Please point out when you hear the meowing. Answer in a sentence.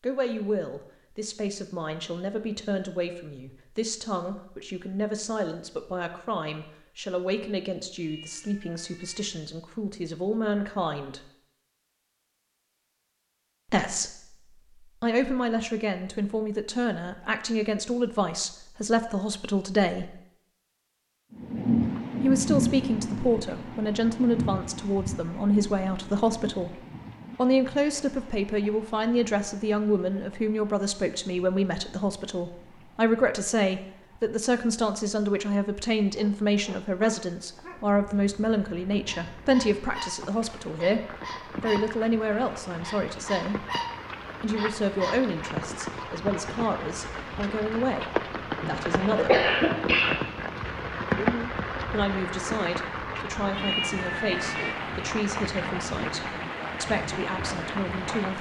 The meowing can be heard from 8.0 to 9.5 s and from 53.5 to 54.8 s.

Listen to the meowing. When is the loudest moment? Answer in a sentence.
The loudest moment of the meowing is at 54 seconds.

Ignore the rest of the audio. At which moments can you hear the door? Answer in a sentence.
The door can't be heard in this clip.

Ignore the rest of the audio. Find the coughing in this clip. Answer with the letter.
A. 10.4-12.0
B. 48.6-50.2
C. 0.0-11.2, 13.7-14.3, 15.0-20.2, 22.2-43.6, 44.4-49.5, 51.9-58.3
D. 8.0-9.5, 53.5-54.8
B.